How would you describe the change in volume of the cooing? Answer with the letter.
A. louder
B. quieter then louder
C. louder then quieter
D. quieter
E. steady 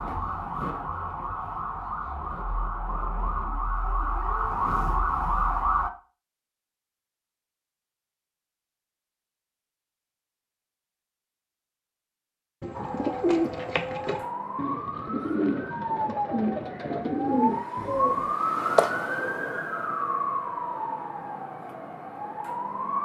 B.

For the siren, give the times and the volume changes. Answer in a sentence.
You can hear the siren from 0.0 to 5.9 s, getting louder; and from 12.7 to 22.9 s, getting louder then quieter.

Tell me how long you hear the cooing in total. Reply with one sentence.
The cooing can be heard for 6 seconds in total.